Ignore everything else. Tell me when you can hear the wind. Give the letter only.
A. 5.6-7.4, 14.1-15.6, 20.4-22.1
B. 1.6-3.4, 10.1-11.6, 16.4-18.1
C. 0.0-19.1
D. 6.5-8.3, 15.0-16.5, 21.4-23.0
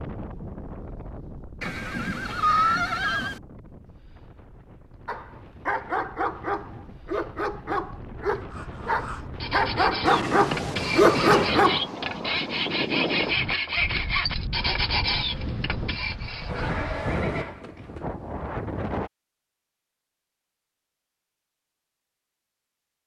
C.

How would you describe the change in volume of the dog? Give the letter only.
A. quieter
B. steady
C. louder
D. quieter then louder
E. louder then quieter
C.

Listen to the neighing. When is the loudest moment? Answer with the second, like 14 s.
3 s.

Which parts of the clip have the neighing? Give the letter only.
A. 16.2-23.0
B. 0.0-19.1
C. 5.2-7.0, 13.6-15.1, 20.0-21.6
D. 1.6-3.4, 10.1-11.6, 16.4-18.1
D.